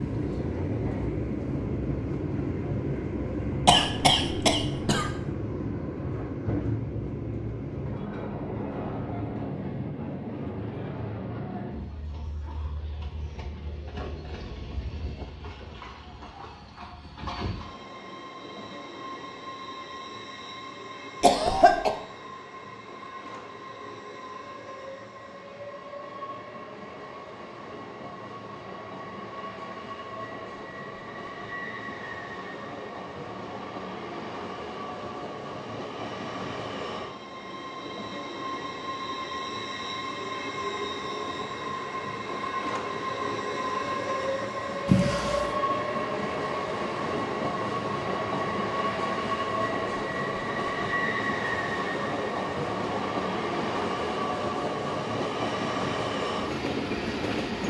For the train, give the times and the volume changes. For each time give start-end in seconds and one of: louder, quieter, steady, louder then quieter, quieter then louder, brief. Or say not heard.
0.0-57.6 quieter then louder.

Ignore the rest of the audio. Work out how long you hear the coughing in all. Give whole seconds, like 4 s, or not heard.
3 s.